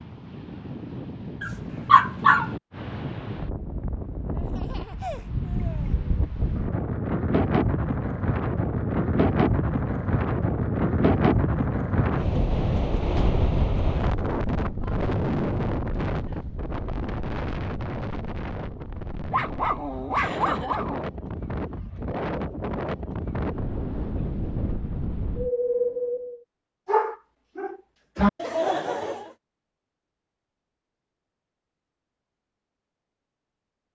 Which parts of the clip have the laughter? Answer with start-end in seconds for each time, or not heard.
4.3-6.0, 20.1-20.8, 28.4-29.4.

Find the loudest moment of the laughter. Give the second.
29 s.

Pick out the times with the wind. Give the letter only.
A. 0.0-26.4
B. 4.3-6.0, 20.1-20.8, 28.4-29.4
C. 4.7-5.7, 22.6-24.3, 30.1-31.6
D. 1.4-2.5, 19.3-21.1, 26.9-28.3
A.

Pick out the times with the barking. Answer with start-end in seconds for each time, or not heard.
1.4-2.5, 19.3-21.1, 26.9-28.3.